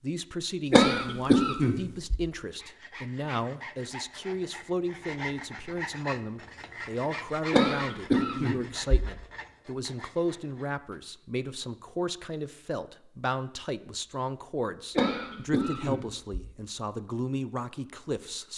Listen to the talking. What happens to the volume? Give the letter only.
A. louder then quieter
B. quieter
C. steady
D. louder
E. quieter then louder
C.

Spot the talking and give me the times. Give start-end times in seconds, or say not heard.
0.0-18.5.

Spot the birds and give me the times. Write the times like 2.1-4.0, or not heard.
not heard.